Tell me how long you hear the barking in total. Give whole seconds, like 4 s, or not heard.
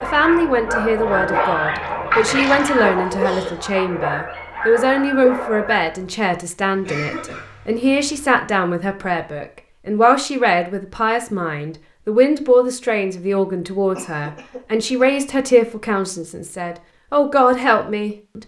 6 s.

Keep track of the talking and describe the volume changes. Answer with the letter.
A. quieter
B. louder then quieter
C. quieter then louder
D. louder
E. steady
E.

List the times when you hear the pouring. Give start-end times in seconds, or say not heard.
1.2-2.8.